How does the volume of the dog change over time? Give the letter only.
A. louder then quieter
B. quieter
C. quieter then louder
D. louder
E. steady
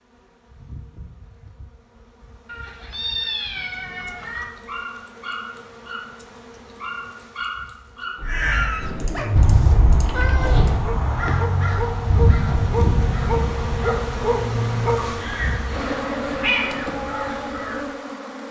D.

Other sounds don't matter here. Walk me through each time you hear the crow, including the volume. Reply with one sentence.
The crow can be heard from 8.2 to 17.9 s, getting quieter.